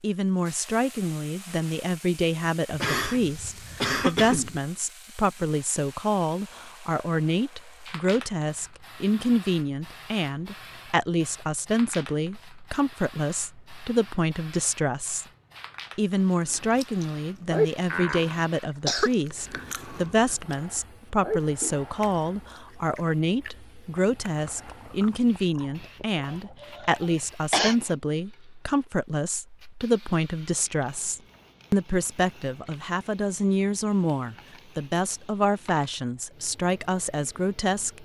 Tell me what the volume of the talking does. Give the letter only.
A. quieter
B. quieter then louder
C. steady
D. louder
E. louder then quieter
C.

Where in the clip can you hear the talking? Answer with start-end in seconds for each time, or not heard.
0.0-15.2, 15.9-38.0.